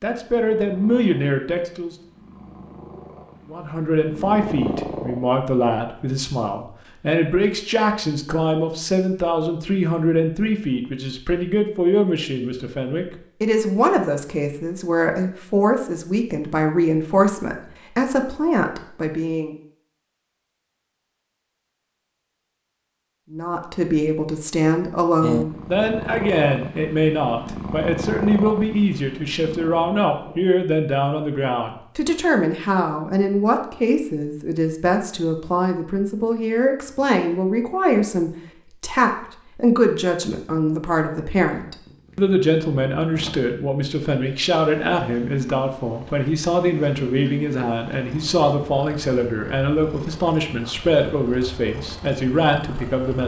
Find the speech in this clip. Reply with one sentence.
You can hear the speech from 0.0 to 1.9 s, from 3.5 to 19.6 s and from 23.3 to 53.2 s.